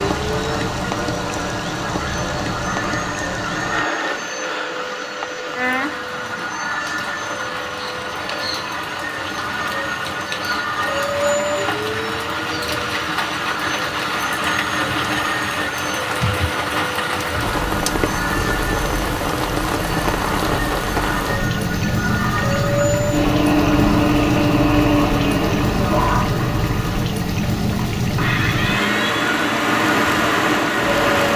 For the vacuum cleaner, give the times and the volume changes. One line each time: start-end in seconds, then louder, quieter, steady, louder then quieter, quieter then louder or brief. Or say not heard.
0.0-31.3 louder.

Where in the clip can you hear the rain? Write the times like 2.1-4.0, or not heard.
0.0-31.3.